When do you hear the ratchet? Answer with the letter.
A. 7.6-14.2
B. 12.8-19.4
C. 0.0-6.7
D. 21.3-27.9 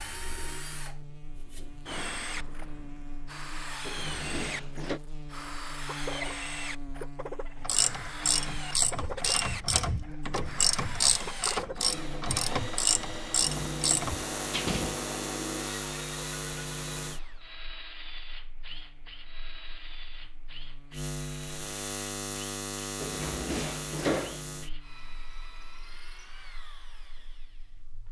A.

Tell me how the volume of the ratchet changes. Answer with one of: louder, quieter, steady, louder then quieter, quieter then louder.
steady.